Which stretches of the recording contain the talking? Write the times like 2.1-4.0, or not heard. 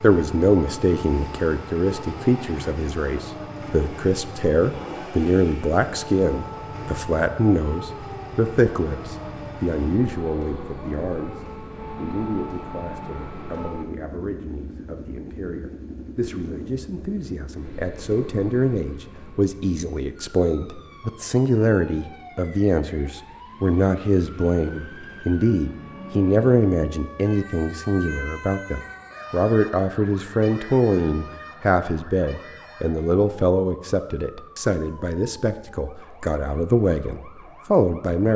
0.0-38.3.